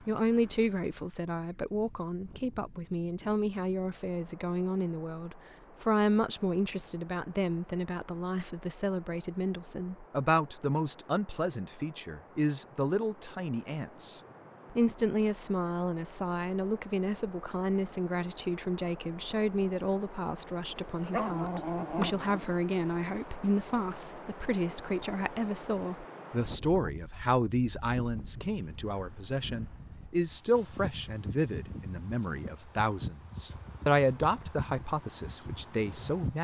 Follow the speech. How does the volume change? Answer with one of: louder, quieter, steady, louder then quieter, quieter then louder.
steady.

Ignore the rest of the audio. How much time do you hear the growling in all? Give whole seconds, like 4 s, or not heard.
2 s.